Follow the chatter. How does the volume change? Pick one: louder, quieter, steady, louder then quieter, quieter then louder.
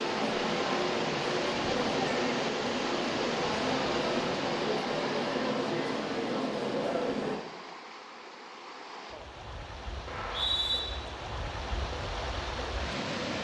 steady.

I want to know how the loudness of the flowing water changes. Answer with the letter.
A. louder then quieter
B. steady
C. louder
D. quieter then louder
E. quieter
D.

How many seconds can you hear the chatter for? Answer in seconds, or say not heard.
7 s.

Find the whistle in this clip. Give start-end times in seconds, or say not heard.
10.1-10.8.